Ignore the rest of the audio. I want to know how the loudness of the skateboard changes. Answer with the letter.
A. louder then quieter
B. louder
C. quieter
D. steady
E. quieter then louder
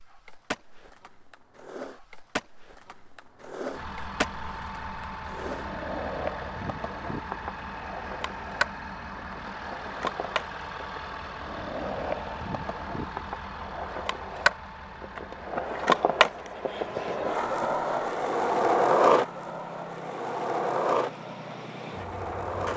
B.